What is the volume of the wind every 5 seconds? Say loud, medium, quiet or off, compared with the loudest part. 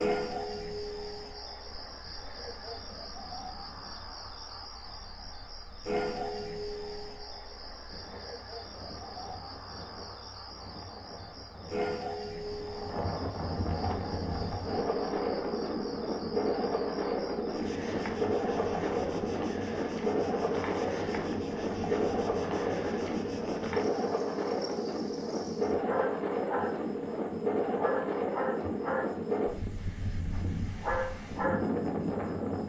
quiet, quiet, medium, loud, loud, loud, loud.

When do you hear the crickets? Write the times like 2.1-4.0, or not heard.
0.0-32.6.